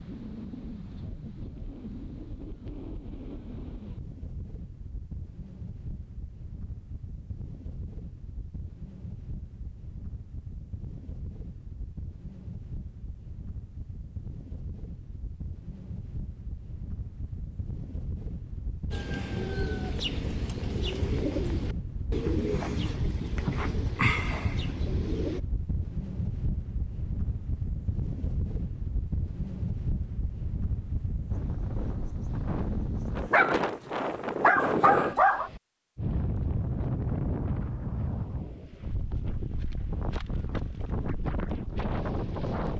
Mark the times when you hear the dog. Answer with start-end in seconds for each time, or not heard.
33.3-35.5.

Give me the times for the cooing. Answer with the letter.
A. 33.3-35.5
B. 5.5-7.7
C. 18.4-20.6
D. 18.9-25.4
D.